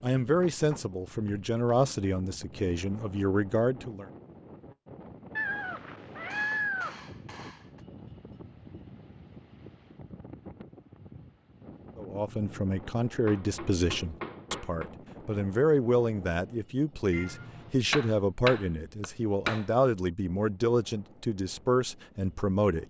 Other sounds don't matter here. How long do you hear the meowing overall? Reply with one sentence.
You can hear the meowing for 2 seconds altogether.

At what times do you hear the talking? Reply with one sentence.
You can hear the talking from 0.0 to 4.1 s and from 11.9 to 22.8 s.